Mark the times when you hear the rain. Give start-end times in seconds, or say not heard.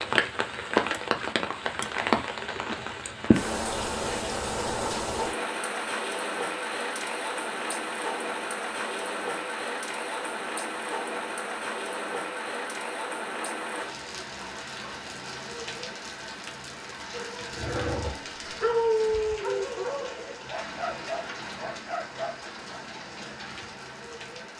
0.0-24.5.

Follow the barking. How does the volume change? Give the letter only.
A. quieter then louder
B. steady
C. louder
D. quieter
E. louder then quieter
E.